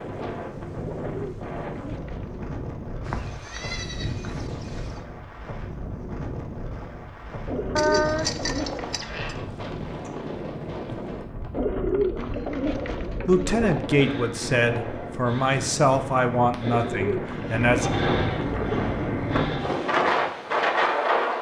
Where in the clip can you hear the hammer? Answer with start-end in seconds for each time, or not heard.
not heard.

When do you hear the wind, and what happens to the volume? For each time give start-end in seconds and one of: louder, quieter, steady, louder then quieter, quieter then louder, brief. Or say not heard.
0.0-21.3 louder.